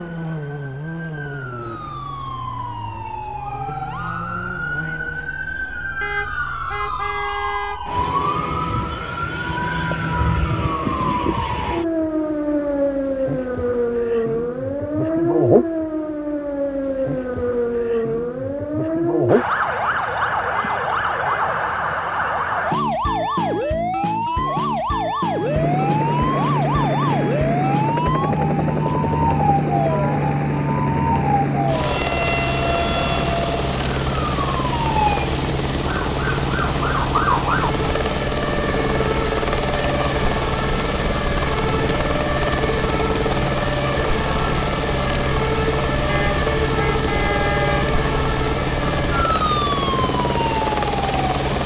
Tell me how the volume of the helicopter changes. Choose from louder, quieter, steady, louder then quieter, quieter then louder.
steady.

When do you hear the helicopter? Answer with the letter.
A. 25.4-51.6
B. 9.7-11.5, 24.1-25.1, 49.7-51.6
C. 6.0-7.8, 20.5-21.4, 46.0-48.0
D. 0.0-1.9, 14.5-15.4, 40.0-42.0
A.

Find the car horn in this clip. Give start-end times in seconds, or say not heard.
6.0-7.8, 20.5-21.4, 46.0-48.0.